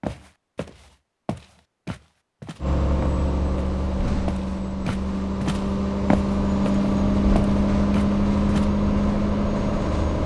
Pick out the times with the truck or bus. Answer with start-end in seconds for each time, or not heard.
2.6-10.2.